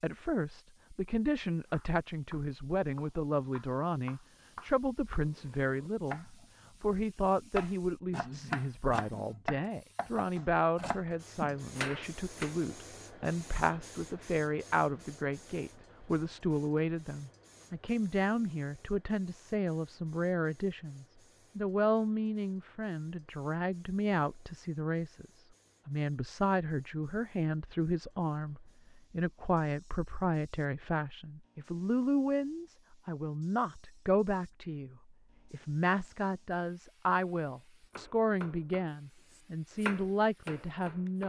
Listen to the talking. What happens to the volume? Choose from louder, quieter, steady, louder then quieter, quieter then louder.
steady.